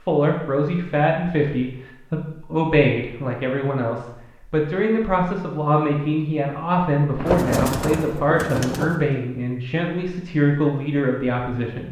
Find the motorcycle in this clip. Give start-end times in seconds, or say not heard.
not heard.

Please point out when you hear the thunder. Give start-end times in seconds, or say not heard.
7.2-8.9.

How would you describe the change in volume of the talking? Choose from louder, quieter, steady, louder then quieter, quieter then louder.
steady.